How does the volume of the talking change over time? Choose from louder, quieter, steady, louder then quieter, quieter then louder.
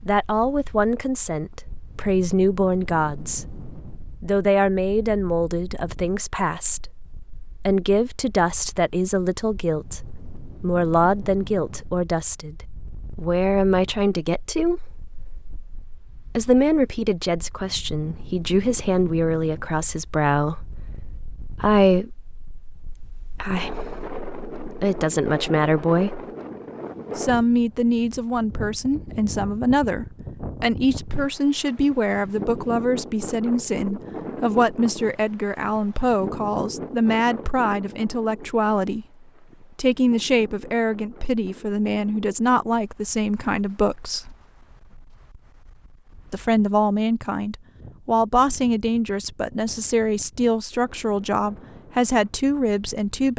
steady.